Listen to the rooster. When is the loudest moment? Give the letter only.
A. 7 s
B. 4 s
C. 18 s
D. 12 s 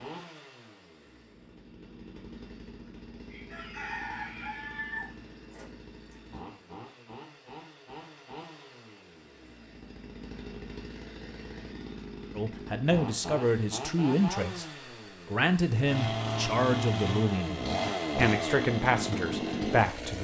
B.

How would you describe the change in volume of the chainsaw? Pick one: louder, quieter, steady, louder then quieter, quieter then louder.
louder.